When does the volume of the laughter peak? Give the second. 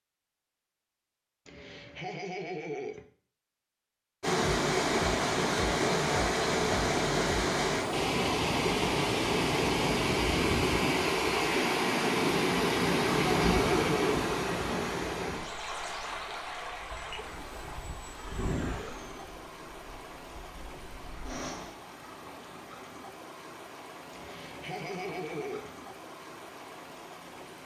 14 s.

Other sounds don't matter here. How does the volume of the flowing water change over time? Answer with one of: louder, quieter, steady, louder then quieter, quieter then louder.
quieter.